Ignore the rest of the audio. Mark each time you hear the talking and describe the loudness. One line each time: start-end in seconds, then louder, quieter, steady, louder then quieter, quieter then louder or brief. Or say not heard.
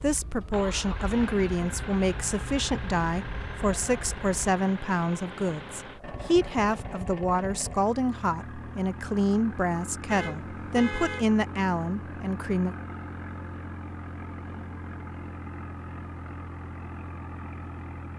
0.0-12.8 steady.